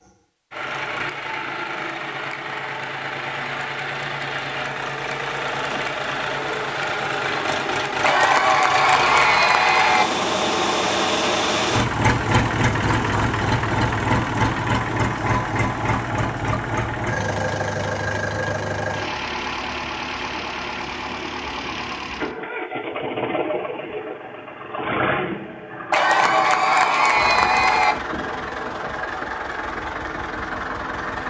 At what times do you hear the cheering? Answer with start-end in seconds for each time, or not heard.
8.0-10.1, 25.9-27.9.